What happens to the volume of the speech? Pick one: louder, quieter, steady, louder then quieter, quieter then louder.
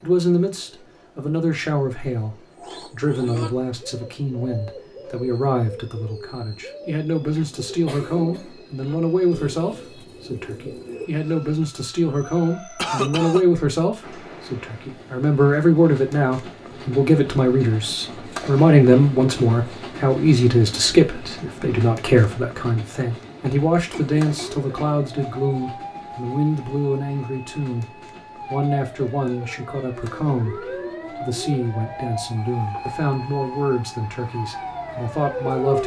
louder then quieter.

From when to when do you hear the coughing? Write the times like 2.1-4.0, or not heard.
7.3-8.4, 12.8-13.4, 23.9-24.9.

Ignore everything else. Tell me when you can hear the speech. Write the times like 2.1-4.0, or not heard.
0.0-27.9, 28.4-35.8.